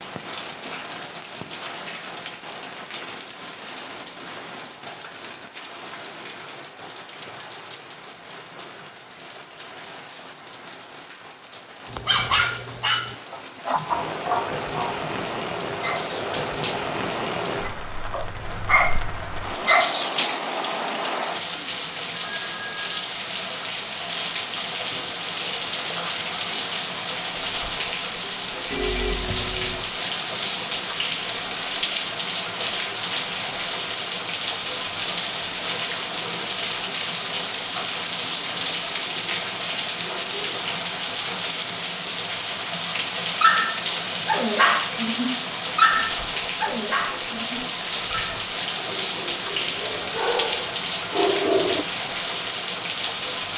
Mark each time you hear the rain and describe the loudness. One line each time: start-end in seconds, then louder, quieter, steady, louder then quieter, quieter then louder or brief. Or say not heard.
0.0-53.5 louder.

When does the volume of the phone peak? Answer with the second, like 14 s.
29 s.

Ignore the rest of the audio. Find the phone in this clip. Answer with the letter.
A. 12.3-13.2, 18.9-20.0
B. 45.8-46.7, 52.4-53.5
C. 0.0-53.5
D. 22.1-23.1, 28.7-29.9
D.